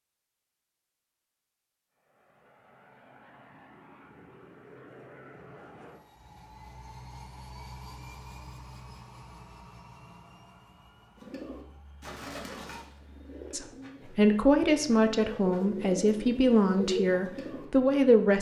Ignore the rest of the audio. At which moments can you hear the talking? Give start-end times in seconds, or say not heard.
13.5-18.3.